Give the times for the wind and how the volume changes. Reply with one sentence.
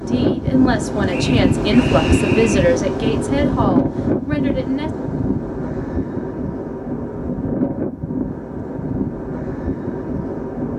The wind can be heard from 0.0 to 10.7 s, getting quieter.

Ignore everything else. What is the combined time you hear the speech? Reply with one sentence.
You can hear the speech for 5 seconds altogether.